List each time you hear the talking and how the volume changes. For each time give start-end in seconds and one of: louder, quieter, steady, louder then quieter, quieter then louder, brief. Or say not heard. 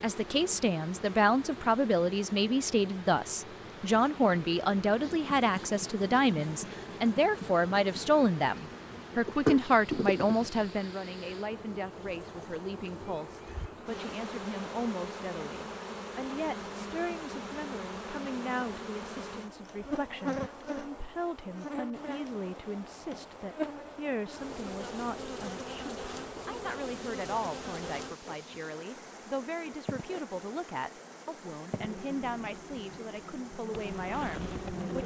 0.0-35.0 quieter.